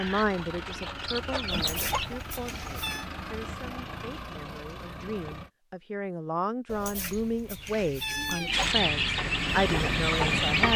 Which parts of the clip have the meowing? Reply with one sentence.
The meowing can be heard from 1.5 to 3.1 s and from 6.7 to 8.7 s.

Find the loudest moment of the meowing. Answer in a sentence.
The volume of the meowing peaks at 8 seconds.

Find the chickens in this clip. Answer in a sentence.
You can hear the chickens from 0.0 to 2.2 s and from 7.5 to 10.7 s.